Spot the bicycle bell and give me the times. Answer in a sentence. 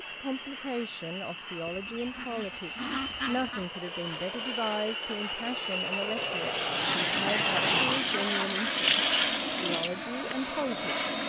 The bicycle bell can't be heard in this clip.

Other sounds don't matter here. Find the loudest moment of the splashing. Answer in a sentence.
The volume of the splashing peaks at 9 seconds.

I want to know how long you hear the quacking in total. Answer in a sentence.
The quacking can be heard for 5 seconds in total.